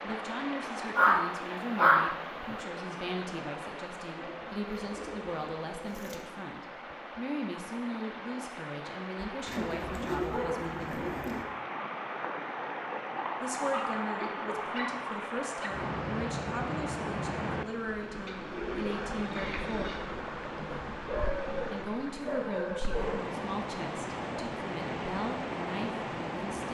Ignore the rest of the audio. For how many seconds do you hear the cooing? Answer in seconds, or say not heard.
6 s.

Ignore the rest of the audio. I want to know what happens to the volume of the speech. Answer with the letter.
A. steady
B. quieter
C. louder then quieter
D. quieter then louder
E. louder
A.